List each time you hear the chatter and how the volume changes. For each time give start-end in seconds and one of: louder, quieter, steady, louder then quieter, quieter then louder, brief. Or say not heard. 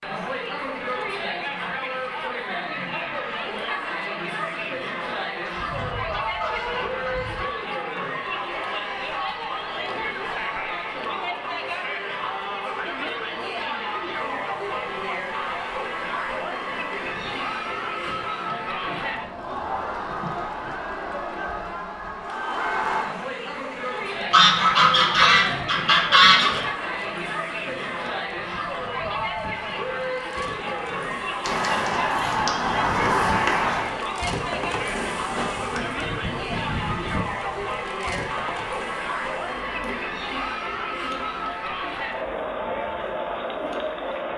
0.0-44.3 steady.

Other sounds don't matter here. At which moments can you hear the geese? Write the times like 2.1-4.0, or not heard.
5.4-7.5, 24.3-26.6, 31.4-34.0.